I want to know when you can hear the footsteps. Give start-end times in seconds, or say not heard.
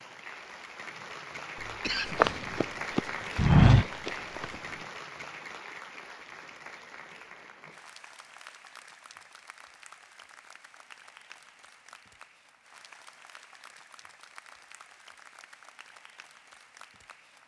2.0-4.5.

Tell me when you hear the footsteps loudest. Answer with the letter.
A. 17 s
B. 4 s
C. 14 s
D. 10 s
B.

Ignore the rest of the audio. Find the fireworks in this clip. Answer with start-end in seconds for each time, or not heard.
not heard.